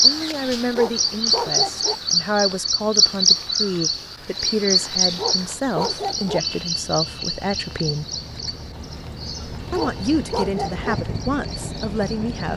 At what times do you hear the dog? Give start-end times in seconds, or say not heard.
0.7-1.9, 5.0-6.4, 9.7-10.9.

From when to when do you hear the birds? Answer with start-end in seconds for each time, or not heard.
0.0-12.5.